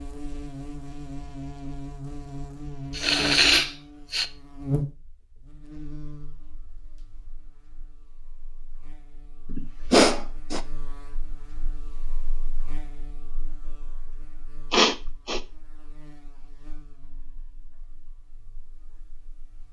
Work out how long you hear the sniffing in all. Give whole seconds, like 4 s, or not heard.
3 s.